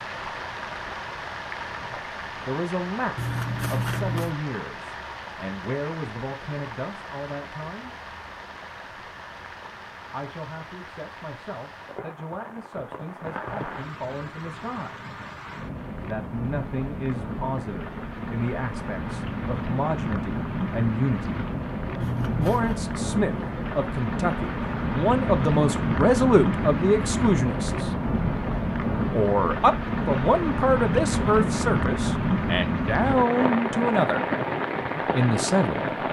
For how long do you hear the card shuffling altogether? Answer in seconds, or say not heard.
2 s.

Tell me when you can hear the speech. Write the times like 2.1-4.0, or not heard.
1.8-8.0, 10.1-15.1, 16.0-21.4, 22.4-27.9, 29.1-34.2, 35.1-35.9.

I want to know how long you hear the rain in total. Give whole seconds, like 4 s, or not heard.
36 s.